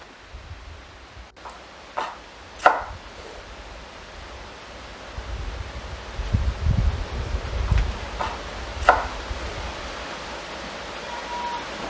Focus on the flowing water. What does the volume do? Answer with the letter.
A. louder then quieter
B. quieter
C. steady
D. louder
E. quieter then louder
D.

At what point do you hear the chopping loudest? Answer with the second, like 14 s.
3 s.